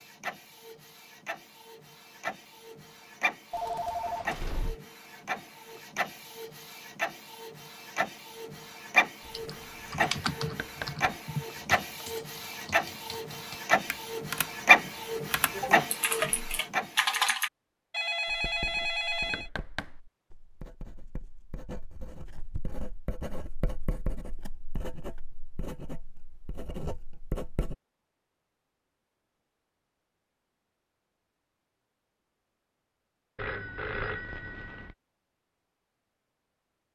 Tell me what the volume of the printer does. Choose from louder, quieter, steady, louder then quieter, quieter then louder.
louder.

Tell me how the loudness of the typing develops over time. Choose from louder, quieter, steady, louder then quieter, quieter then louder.
quieter then louder.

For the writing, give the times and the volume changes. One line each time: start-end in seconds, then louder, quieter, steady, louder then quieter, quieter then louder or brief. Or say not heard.
18.2-27.8 louder.